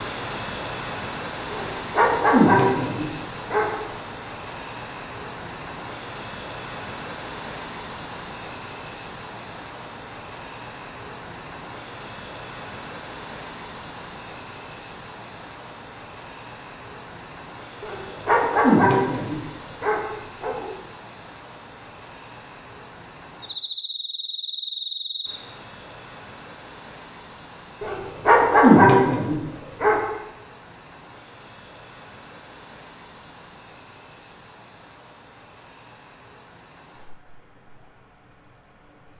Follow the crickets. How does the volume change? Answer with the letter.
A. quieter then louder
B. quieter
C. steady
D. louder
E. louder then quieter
B.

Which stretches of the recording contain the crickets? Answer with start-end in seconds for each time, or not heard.
0.0-39.1.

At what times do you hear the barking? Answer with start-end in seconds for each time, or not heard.
1.5-3.7, 17.8-20.7, 27.8-30.0.